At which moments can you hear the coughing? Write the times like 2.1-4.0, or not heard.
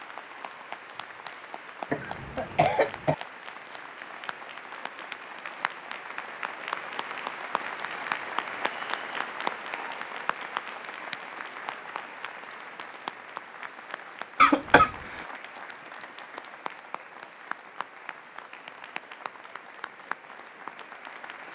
1.9-3.1, 14.4-14.9.